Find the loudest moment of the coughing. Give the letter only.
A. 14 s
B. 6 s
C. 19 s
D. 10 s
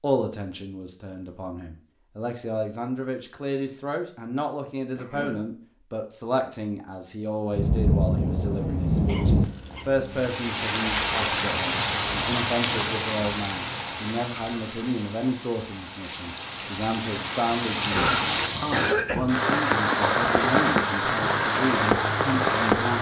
C.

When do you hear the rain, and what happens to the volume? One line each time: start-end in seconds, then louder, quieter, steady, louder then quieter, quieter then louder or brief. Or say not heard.
7.5-22.9 quieter then louder.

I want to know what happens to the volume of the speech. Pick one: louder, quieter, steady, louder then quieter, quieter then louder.
steady.